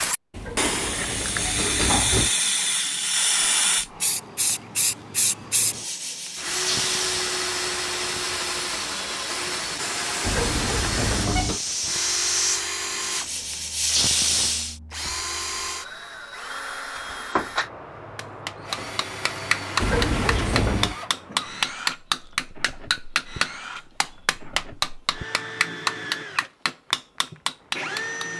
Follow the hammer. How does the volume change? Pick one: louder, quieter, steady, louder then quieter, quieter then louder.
steady.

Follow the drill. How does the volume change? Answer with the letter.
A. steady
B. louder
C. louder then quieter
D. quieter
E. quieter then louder
D.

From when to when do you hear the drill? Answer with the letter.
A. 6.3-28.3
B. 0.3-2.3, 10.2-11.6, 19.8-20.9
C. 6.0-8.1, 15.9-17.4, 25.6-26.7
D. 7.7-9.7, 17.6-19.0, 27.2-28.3
A.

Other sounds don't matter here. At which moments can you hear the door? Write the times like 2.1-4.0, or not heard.
0.3-2.3, 10.2-11.6, 19.8-20.9.